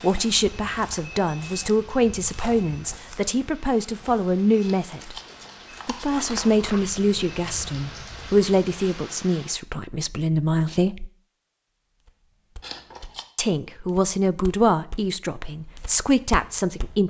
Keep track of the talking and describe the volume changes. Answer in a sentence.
The volume of the talking stays about the same.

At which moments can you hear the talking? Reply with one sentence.
The talking can be heard from 0.0 to 5.2 s, from 5.8 to 11.1 s and from 13.3 to 17.0 s.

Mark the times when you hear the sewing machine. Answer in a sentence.
The sewing machine can't be heard in this clip.